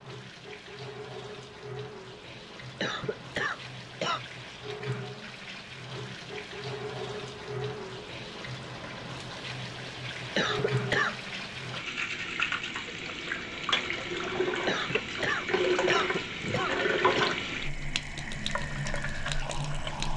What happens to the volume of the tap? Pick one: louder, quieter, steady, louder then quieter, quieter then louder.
louder.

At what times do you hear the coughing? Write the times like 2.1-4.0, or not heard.
2.8-4.2, 10.3-11.2, 14.7-17.4.